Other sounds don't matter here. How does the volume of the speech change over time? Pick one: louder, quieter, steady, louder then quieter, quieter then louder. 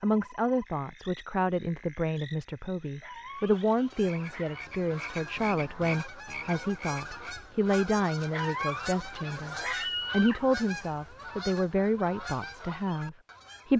steady.